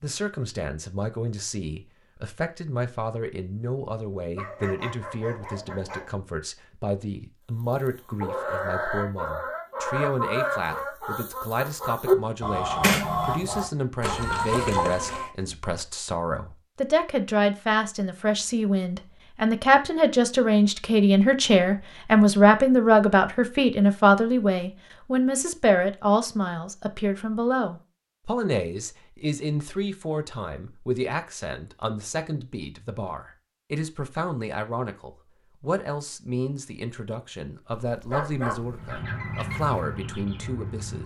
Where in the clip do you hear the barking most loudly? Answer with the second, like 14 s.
38 s.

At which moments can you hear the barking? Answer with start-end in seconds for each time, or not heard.
4.3-6.2, 37.9-38.8.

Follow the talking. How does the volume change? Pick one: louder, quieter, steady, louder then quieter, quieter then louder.
louder then quieter.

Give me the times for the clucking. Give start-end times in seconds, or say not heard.
7.6-15.3, 38.5-41.0.